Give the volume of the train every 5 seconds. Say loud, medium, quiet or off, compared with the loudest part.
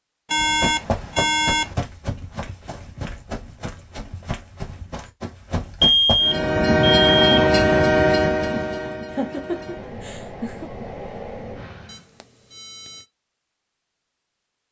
off, loud, quiet.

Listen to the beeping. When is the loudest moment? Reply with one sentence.
The loudest moment of the beeping is at 6 seconds.